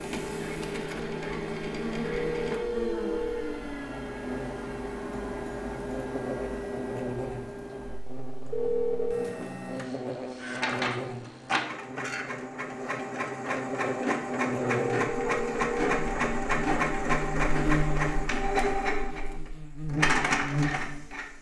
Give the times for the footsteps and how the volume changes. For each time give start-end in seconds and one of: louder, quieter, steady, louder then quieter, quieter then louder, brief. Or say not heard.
not heard.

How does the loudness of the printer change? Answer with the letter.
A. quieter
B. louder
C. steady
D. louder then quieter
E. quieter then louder
B.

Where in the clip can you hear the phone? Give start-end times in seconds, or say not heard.
2.0-3.6, 8.5-9.3, 14.7-15.9.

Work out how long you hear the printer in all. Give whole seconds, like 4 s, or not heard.
21 s.